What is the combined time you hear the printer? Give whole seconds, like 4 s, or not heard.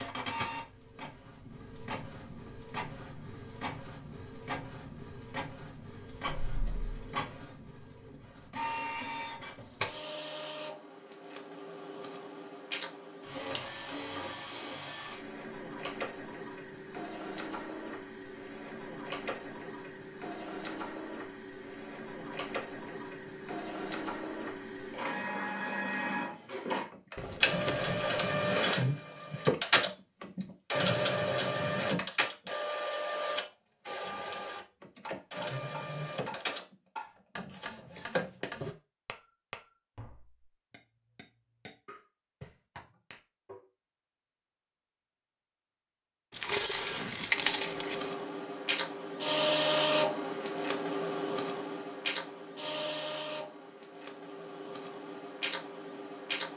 48 s.